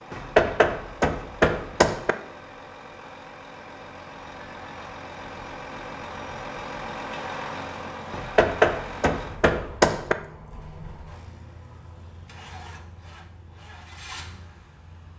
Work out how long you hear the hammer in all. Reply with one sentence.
You can hear the hammer for 4 seconds altogether.